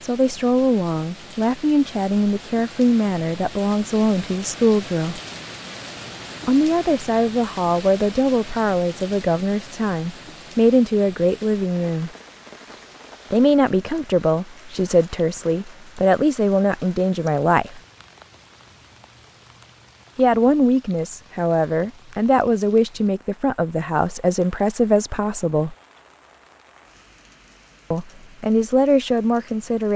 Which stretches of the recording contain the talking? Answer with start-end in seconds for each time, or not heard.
0.0-5.2, 6.5-12.1, 13.3-17.8, 20.1-25.8, 27.9-29.9.